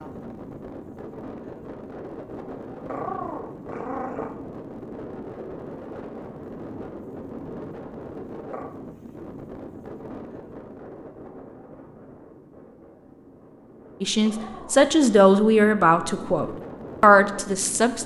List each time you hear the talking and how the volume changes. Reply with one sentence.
The talking can be heard from 14.0 to 18.0 s, getting quieter then louder.